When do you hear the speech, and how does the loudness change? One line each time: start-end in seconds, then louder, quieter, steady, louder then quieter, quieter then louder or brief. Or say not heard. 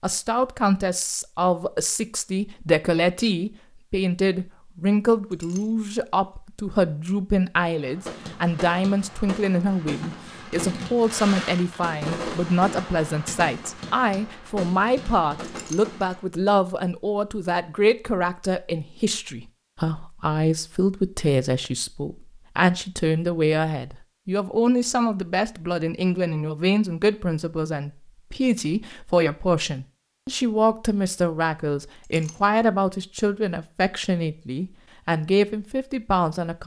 0.0-36.6 steady.